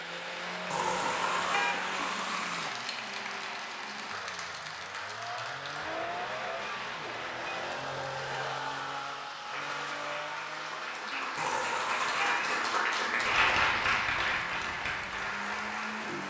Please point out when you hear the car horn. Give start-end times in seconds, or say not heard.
0.7-2.7, 7.5-8.6, 11.3-12.6.